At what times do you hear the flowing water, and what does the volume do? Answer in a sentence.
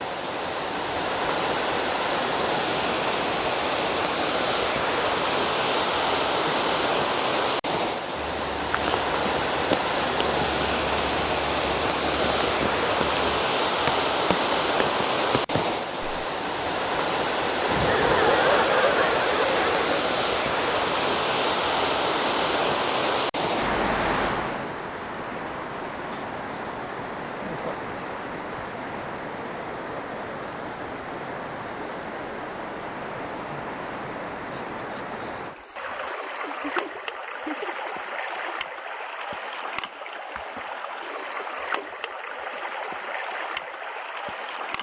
You can hear the flowing water from 0.0 to 44.7 s, getting quieter.